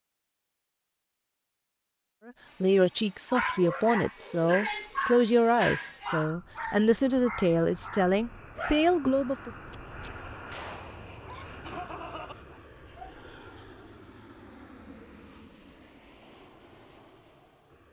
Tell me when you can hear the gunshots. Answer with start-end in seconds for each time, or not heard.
9.7-11.2.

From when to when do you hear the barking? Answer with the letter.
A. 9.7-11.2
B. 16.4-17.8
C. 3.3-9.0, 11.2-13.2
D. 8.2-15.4
C.